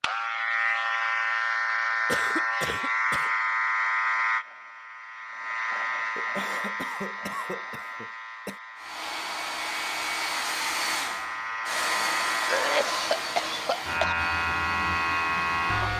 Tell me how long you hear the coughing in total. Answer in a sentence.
You can hear the coughing for 5 seconds altogether.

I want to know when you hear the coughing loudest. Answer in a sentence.
The volume of the coughing peaks at 13 seconds.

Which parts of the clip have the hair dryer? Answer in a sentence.
The hair dryer can be heard from 8.8 to 15.9 s.